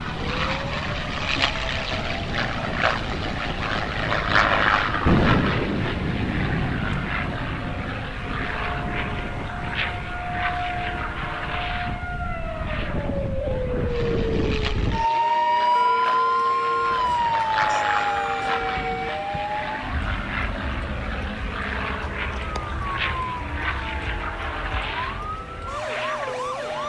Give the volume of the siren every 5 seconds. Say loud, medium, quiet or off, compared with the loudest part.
medium, medium, medium, loud, quiet, medium.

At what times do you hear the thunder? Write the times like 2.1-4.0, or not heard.
5.0-7.0, 16.8-19.8.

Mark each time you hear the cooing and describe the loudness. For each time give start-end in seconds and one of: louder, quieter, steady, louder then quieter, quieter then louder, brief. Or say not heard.
not heard.